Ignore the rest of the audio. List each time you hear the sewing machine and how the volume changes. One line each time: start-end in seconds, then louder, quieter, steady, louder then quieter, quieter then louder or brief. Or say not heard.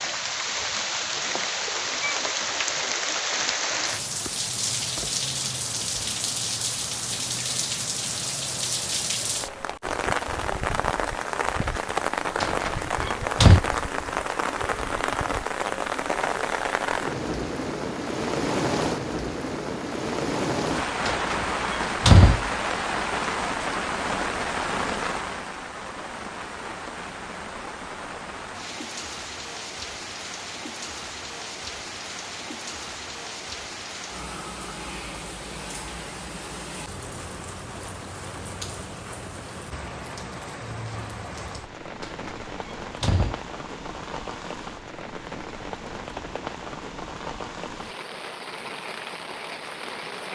not heard.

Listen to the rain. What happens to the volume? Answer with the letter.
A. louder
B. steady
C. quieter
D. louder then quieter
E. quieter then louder
C.